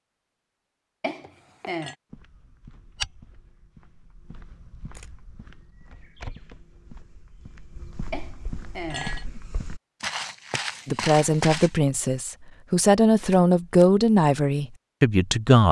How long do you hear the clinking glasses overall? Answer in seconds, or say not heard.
2 s.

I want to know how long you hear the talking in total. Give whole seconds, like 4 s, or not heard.
5 s.